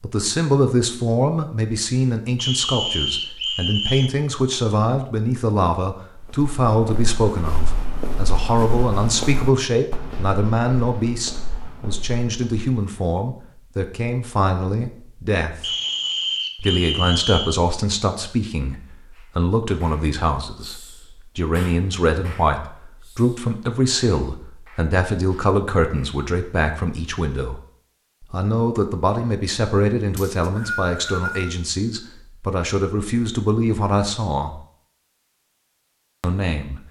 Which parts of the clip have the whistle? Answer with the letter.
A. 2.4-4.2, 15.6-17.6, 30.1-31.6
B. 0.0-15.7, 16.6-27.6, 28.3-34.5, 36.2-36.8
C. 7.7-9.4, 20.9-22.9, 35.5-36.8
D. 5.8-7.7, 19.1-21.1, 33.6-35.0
A.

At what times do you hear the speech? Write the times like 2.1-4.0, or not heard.
0.0-15.7, 16.6-27.6, 28.3-34.5, 36.2-36.8.